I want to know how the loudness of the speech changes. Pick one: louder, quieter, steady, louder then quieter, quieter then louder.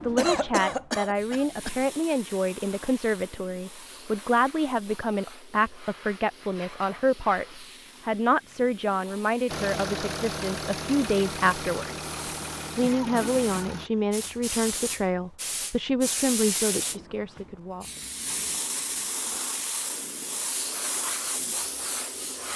steady.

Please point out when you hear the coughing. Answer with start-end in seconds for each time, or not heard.
0.1-1.8, 12.8-14.1.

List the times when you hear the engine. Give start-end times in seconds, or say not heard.
9.4-13.9.